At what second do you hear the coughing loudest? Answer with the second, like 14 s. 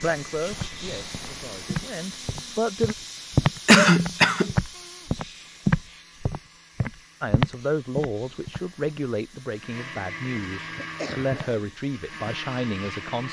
4 s.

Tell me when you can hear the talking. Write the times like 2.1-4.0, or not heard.
0.0-3.0, 7.2-13.2.